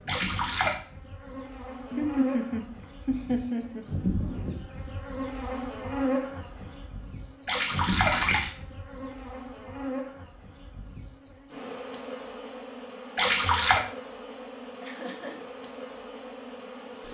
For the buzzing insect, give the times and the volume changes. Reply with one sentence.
The buzzing insect can be heard from 0.0 to 17.1 s, getting louder then quieter.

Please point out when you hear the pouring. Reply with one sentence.
You can hear the pouring from 0.1 to 0.8 s, from 7.5 to 8.5 s and from 13.2 to 13.8 s.